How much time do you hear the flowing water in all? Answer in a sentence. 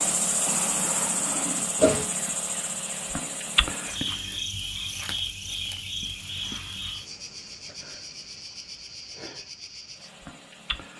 The flowing water can't be heard in this clip.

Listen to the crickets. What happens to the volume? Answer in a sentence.
The volume of the crickets goes down.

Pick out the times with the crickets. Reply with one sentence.
The crickets can be heard from 0.0 to 10.9 s.